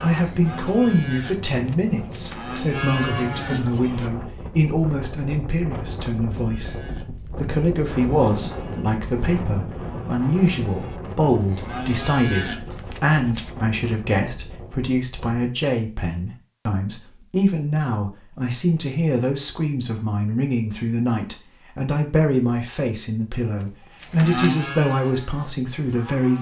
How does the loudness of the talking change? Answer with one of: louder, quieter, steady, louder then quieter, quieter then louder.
steady.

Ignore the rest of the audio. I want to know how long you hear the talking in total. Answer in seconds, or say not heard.
26 s.